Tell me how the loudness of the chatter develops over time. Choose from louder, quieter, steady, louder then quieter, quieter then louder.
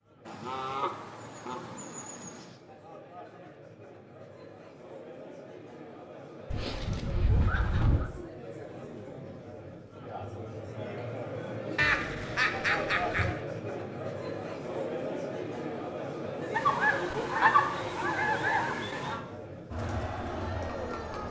louder.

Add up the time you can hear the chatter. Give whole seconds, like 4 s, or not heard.
21 s.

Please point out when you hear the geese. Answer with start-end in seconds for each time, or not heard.
0.2-2.5, 6.5-8.1, 11.8-13.3, 16.5-19.2.